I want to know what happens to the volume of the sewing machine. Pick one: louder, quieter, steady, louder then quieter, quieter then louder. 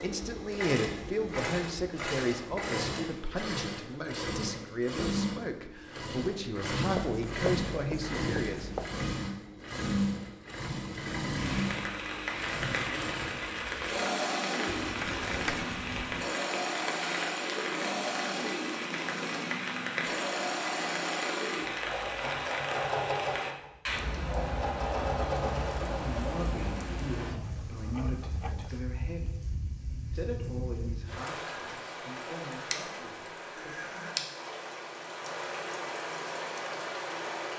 steady.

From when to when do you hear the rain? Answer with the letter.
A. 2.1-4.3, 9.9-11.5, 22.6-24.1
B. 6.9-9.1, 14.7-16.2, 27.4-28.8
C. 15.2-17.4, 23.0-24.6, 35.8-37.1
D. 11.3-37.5
D.